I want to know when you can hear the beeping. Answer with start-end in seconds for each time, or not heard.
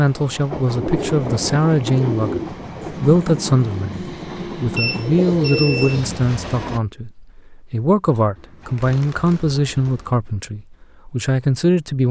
4.8-6.0.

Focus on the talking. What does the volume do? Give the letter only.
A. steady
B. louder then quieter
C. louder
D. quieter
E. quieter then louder
A.